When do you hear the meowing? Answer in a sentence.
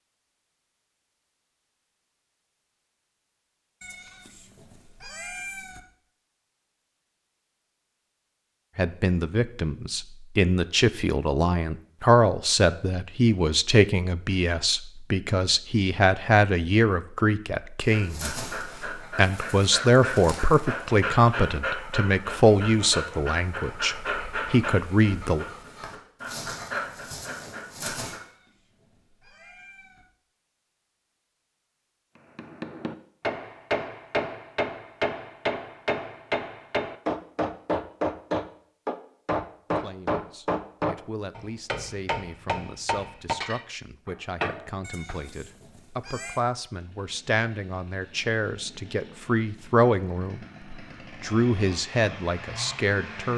You can hear the meowing from 3.8 to 5.8 s, from 28.1 to 30.1 s and from 44.8 to 46.4 s.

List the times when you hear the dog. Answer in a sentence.
The dog can be heard from 17.8 to 28.2 s.